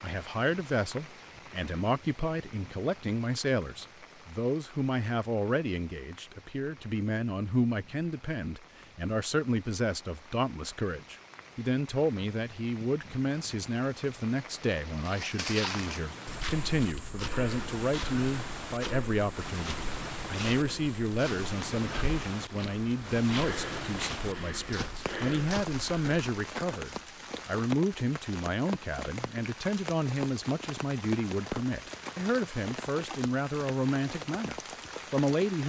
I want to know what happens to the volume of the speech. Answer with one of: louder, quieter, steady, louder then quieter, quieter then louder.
steady.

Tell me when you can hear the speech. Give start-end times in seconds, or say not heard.
0.0-35.6.